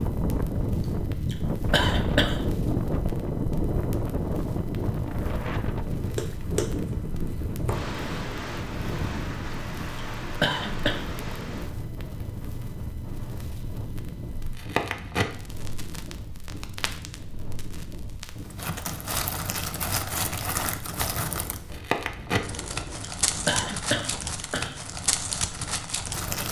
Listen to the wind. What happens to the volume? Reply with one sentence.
The volume of the wind goes down.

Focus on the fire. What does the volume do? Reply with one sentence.
The volume of the fire goes up.